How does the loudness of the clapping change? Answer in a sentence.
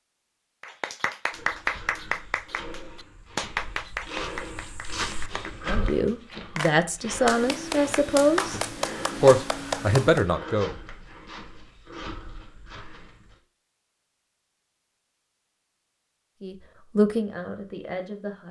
The volume of the clapping goes down, then up.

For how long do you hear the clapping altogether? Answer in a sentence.
The clapping can be heard for 10 seconds in total.